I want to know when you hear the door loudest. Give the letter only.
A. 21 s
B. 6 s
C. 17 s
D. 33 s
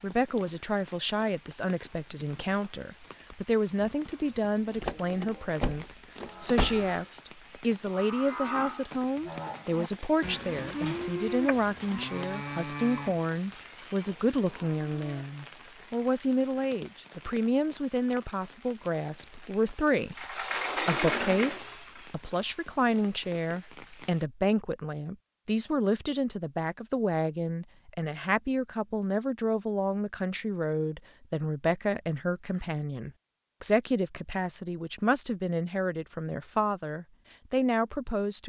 A.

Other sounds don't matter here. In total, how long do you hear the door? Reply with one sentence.
The door can be heard for 4 seconds in total.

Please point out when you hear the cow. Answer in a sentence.
You can hear the cow from 3.8 to 15.2 s.